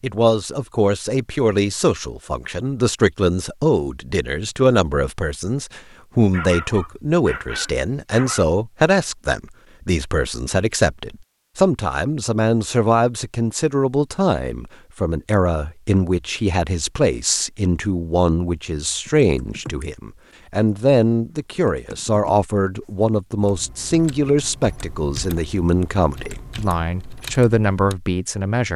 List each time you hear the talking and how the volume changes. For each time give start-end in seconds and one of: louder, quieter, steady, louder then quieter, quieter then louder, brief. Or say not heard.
0.0-28.7 steady.